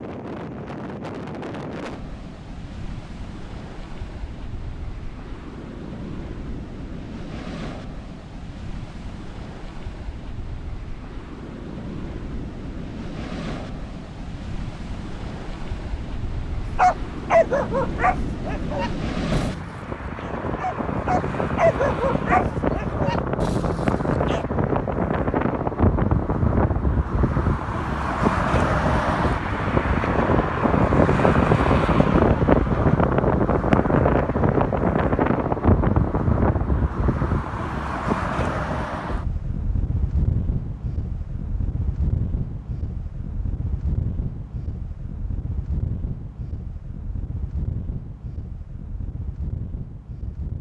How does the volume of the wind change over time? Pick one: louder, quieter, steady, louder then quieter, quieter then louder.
louder then quieter.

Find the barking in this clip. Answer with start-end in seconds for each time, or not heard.
16.6-24.4.